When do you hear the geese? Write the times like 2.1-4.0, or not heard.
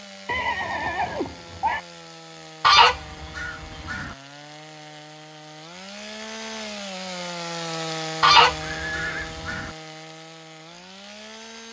2.6-4.2, 8.2-9.7.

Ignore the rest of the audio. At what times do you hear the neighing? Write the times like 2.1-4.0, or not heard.
0.2-1.8, 8.6-9.3.